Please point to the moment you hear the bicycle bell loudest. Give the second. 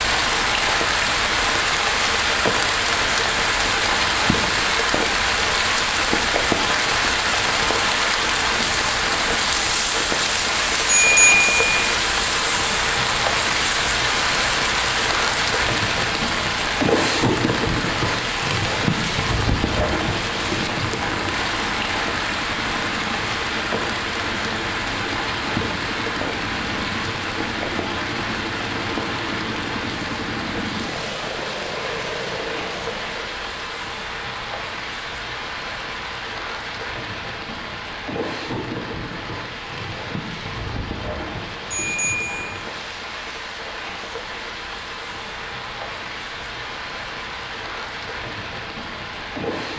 11 s.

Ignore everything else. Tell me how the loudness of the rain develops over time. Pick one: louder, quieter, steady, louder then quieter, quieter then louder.
quieter.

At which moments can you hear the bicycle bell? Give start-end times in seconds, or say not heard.
10.8-11.9, 41.7-42.5.